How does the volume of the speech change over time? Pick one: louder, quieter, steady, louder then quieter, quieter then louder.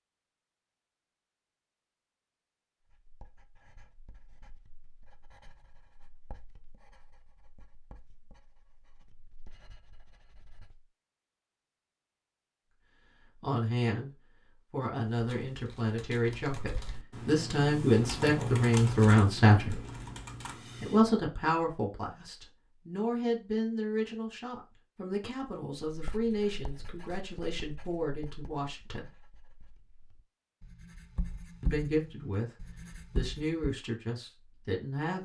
louder then quieter.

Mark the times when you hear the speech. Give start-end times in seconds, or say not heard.
13.2-19.8, 20.8-29.1, 31.6-35.2.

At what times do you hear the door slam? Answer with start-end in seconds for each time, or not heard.
not heard.